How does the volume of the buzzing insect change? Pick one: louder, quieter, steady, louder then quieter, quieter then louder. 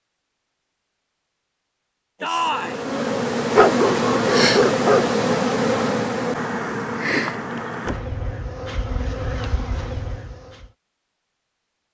quieter.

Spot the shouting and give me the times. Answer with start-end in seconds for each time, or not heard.
2.2-2.8.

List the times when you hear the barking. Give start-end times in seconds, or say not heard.
3.5-5.0.